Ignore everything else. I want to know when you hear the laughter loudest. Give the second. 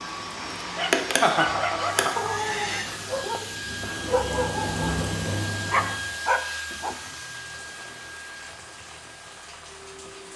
1 s.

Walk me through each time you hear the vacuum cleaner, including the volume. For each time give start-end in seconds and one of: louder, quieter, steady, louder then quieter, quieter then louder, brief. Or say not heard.
0.0-10.3 quieter.